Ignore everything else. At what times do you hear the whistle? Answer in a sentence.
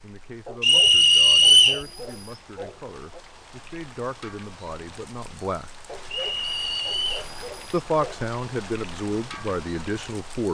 You can hear the whistle from 0.6 to 1.9 s and from 6.1 to 7.2 s.